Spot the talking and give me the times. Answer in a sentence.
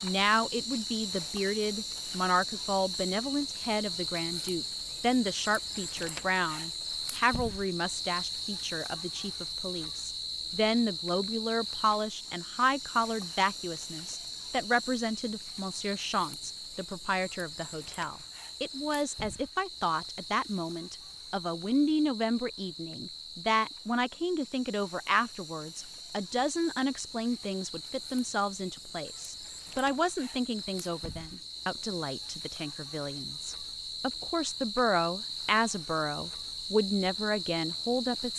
The talking can be heard from 0.0 to 38.3 s.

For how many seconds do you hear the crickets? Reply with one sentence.
You can hear the crickets for 38 seconds altogether.